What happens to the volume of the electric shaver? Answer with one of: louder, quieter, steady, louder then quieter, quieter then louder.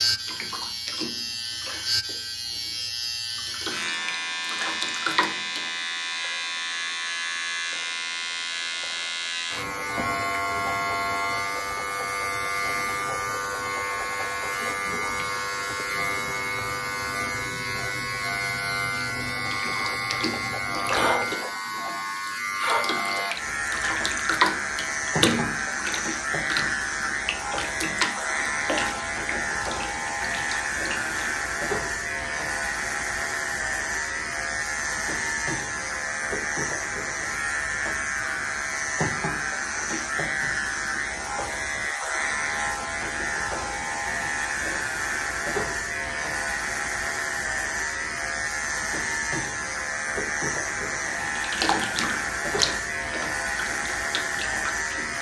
steady.